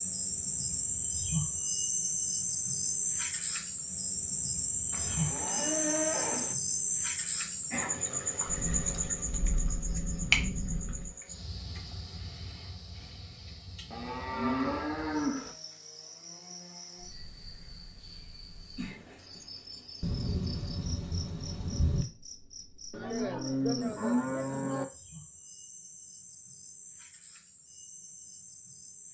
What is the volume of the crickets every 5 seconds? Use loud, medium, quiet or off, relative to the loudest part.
loud, loud, medium, quiet, quiet, quiet.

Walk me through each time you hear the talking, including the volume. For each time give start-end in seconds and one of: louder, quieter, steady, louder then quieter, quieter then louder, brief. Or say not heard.
not heard.